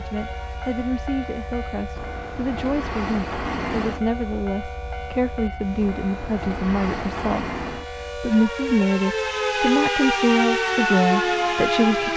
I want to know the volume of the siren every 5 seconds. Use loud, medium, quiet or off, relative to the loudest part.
quiet, medium, loud.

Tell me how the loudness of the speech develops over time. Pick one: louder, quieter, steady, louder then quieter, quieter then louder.
louder.